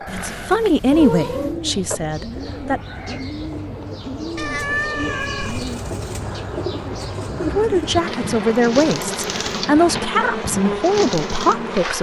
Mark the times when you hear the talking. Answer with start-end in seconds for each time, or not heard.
0.1-2.8, 7.4-11.9.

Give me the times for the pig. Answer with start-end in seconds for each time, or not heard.
not heard.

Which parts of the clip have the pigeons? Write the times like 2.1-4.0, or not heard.
0.9-11.6.